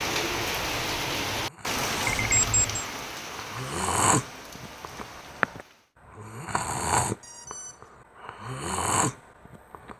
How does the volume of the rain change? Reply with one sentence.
The volume of the rain goes down.